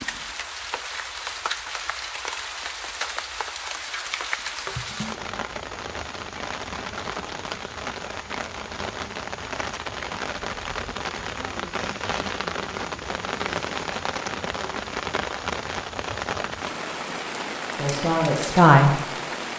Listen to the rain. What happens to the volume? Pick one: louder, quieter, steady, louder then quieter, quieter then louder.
steady.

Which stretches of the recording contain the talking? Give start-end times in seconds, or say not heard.
17.8-19.0.